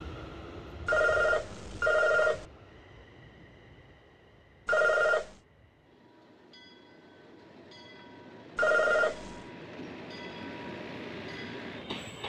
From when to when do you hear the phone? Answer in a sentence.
The phone can be heard from 0.8 to 2.5 s, from 4.7 to 5.3 s and from 8.6 to 9.4 s.